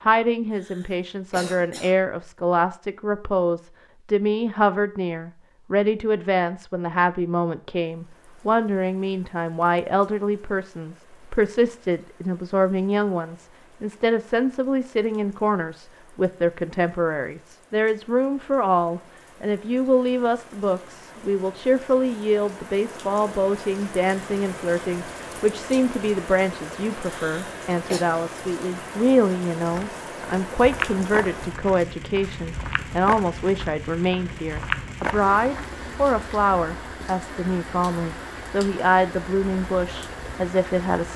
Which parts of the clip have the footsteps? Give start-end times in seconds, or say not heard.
29.6-35.8.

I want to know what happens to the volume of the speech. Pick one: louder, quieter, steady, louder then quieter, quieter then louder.
steady.